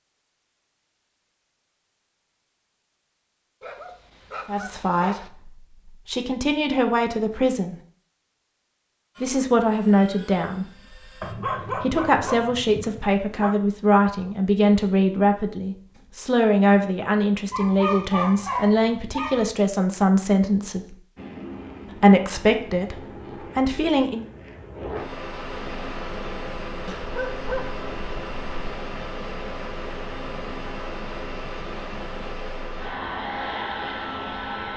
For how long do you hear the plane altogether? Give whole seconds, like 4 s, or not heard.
16 s.